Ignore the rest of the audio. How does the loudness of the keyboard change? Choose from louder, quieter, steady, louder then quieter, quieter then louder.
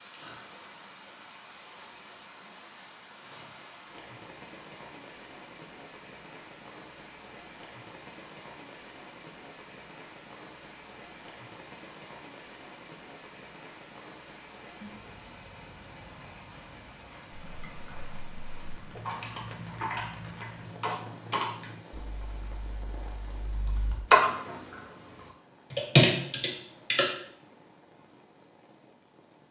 louder.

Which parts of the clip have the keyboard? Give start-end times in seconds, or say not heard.
17.3-27.1.